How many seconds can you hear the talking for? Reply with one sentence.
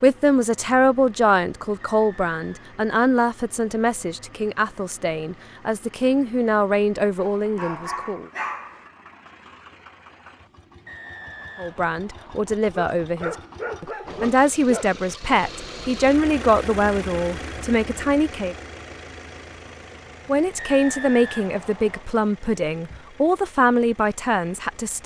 The talking can be heard for 20 seconds in total.